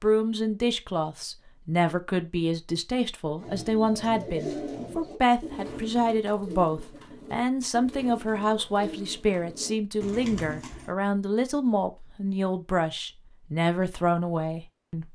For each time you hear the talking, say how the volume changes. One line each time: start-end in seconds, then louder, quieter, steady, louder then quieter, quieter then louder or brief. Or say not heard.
0.0-15.1 steady.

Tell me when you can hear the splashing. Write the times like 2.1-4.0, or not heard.
not heard.